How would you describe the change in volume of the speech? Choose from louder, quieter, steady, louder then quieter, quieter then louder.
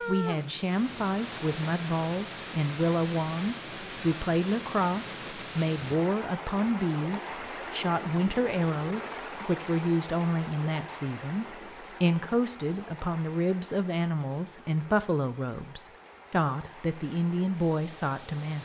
steady.